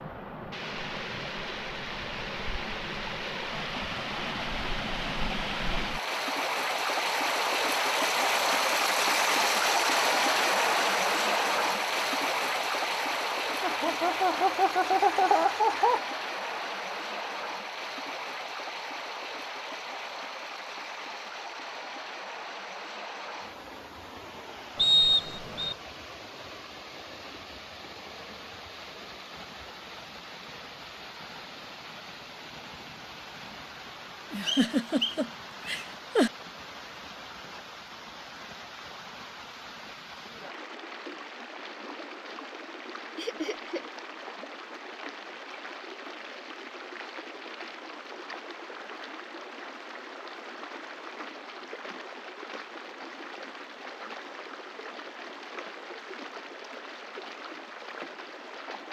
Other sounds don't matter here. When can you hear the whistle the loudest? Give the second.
25 s.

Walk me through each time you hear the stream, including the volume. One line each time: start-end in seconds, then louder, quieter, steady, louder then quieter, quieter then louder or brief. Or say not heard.
0.0-58.8 quieter.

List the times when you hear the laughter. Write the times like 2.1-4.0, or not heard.
13.6-16.0, 34.3-36.3, 43.1-43.9.